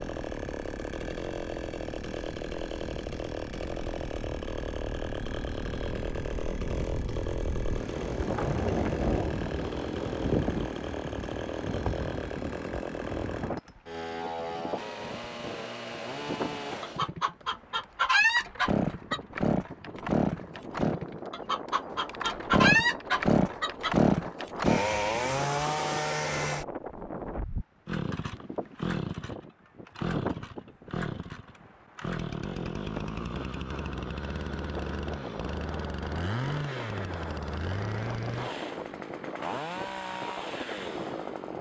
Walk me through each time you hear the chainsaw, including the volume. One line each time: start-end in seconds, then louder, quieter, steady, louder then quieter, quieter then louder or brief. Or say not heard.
0.0-41.5 louder then quieter.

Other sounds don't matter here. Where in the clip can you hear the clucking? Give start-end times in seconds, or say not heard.
16.8-19.2, 21.3-23.9.